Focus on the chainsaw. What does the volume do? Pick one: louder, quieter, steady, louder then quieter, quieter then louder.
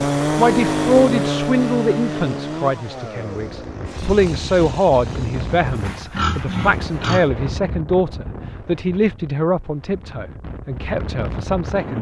quieter.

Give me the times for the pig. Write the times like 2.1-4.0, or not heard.
5.7-7.3.